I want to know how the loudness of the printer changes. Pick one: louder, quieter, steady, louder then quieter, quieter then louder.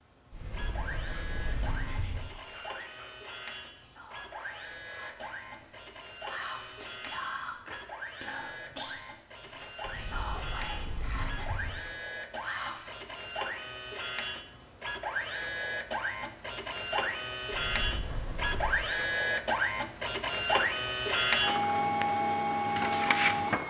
louder.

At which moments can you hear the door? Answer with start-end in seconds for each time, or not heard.
0.3-2.3, 9.8-11.8, 17.5-18.8.